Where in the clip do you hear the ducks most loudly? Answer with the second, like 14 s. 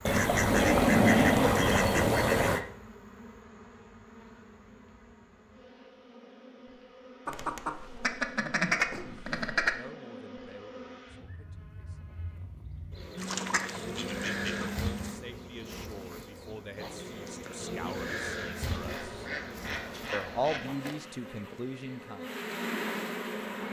1 s.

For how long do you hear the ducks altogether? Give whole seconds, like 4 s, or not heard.
9 s.